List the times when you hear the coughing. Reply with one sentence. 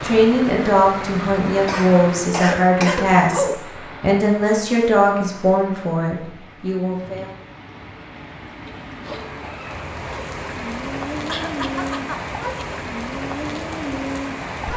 The coughing can be heard from 1.6 to 3.5 s and from 11.2 to 12.8 s.